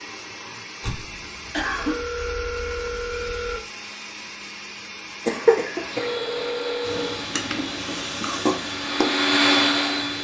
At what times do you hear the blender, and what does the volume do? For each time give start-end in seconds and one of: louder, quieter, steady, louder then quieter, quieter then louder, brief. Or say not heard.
0.0-10.1 louder.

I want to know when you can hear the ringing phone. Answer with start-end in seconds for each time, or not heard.
1.8-3.6, 6.0-7.2.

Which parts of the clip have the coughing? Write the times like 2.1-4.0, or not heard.
0.8-2.0, 5.2-6.0.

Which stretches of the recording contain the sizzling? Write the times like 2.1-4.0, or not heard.
6.8-10.1.